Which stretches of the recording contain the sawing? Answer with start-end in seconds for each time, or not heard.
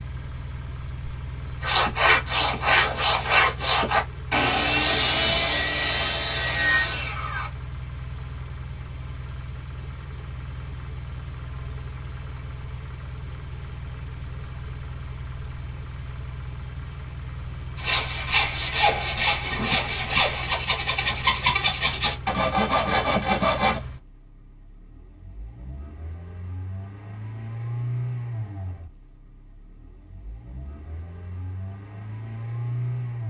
1.6-7.5, 17.8-23.8.